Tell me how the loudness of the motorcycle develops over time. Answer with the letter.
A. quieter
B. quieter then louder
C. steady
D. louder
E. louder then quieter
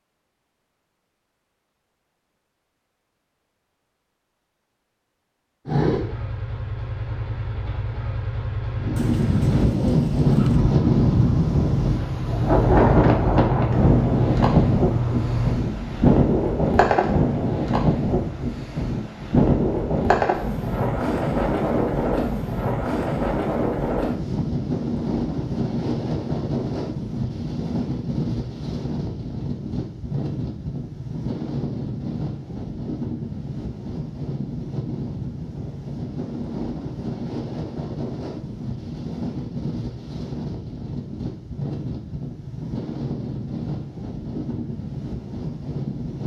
D.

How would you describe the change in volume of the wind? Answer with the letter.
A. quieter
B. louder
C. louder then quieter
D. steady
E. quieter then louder
A.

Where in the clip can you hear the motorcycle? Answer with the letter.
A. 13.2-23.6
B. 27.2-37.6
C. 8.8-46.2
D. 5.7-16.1
D.